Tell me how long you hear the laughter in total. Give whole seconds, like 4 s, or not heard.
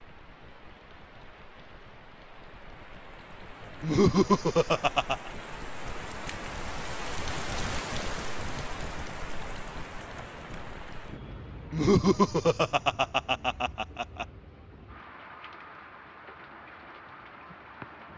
4 s.